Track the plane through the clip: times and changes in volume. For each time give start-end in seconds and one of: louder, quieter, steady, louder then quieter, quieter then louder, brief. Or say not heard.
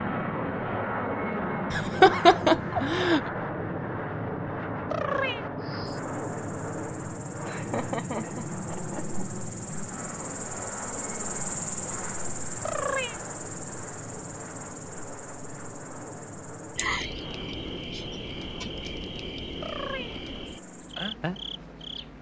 0.0-22.1 quieter.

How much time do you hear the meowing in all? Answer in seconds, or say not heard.
2 s.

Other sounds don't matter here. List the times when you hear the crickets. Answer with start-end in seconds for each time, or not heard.
5.6-22.1.